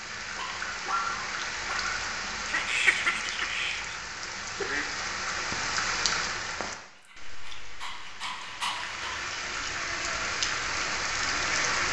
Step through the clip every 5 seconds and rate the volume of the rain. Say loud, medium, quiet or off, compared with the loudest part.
medium, medium, loud.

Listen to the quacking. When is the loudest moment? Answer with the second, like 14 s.
3 s.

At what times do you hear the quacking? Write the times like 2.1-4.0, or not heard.
2.5-4.8.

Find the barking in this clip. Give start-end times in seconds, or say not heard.
0.3-2.0, 7.0-9.2.